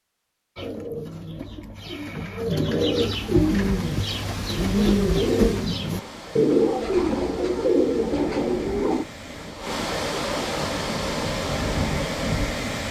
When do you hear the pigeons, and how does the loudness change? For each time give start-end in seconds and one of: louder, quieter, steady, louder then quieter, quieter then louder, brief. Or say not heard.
0.6-9.1 louder.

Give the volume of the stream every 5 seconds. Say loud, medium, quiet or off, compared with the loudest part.
quiet, medium, loud.